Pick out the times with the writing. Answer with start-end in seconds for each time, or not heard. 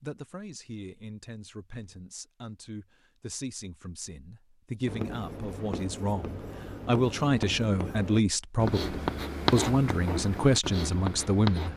4.8-11.7.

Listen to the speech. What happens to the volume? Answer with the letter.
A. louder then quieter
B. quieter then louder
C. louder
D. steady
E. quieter
C.